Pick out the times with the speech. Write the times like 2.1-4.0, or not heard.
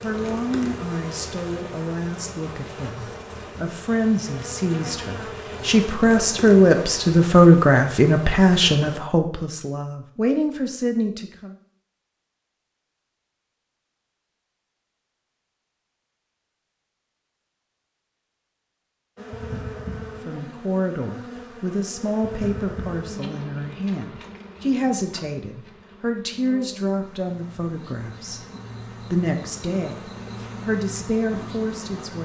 0.0-11.6, 20.2-28.4, 29.1-32.2.